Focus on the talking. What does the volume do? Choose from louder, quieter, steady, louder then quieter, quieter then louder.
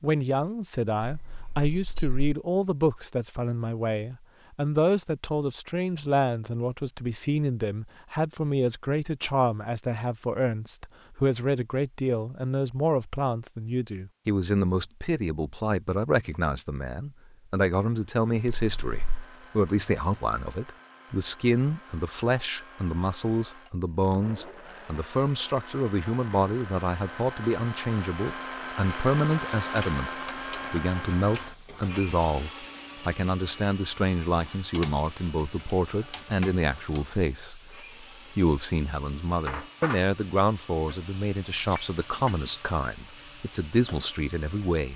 steady.